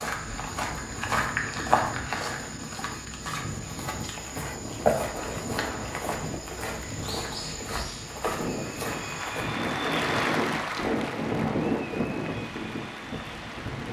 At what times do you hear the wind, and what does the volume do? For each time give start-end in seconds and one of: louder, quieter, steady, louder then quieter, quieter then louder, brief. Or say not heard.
0.1-13.8 louder.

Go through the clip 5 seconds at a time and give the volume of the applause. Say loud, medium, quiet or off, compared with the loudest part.
off, loud, loud.